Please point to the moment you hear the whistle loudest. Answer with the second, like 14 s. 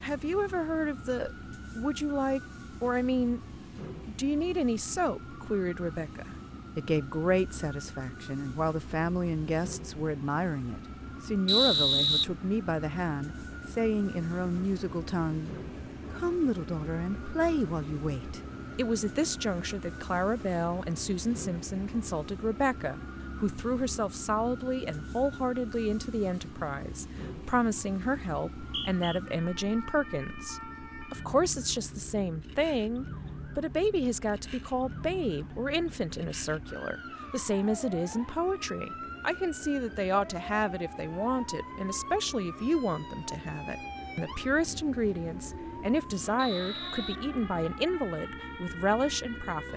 12 s.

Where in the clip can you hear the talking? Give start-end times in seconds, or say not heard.
0.0-3.4, 4.0-15.5, 16.1-49.7.